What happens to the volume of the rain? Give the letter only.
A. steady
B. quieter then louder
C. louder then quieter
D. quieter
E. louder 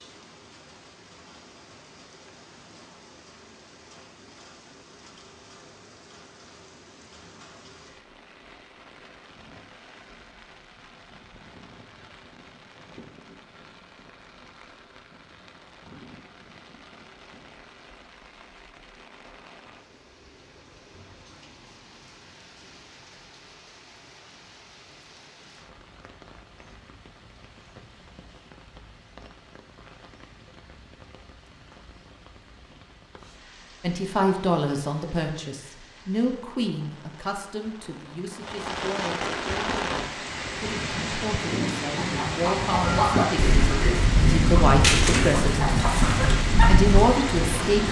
E.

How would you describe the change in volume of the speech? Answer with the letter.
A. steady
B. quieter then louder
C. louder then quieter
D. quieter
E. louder
B.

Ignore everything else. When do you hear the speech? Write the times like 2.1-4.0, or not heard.
33.8-47.8.